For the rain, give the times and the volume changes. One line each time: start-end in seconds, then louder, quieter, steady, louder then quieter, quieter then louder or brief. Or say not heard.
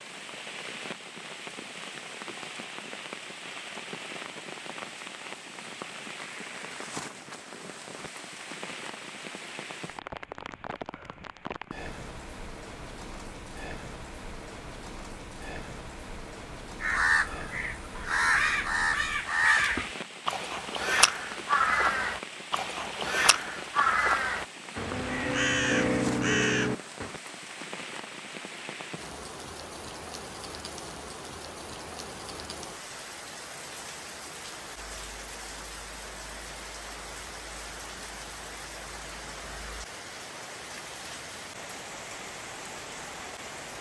0.0-43.7 steady.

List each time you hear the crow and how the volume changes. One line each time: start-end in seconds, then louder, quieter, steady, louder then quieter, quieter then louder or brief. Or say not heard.
16.8-27.1 steady.